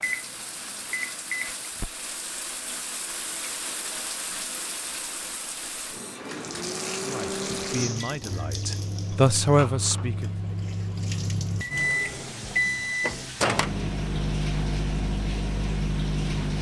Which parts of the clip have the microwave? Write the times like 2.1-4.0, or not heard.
0.0-1.7, 5.9-16.5.